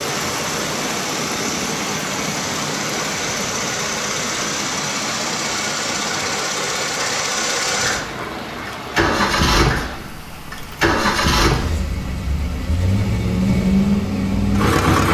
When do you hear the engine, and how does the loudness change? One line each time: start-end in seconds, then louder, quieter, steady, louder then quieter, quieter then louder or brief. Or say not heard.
0.0-15.1 louder.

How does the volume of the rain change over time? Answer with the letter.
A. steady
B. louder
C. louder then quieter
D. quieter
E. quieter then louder
D.